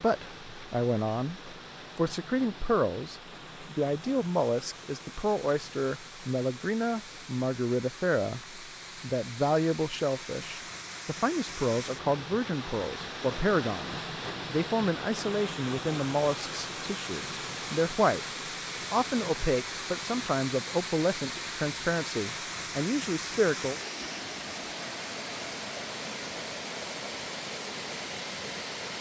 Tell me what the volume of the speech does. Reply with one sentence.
The volume of the speech stays about the same.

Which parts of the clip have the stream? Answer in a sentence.
You can hear the stream from 0.0 to 28.9 s.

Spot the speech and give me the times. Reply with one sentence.
The speech can be heard from 0.0 to 18.2 s and from 18.9 to 23.8 s.